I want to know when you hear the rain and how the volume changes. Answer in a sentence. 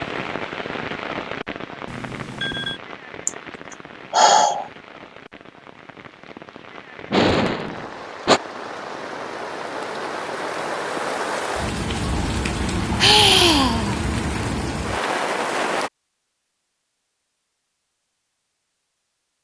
You can hear the rain from 0.0 to 15.9 s, getting quieter then louder.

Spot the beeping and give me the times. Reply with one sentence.
The beeping can be heard from 1.9 to 2.8 s.